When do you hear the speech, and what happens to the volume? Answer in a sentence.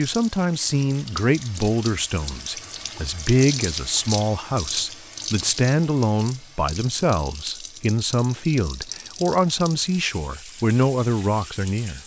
You can hear the speech from 0.0 to 12.0 s, at a steady volume.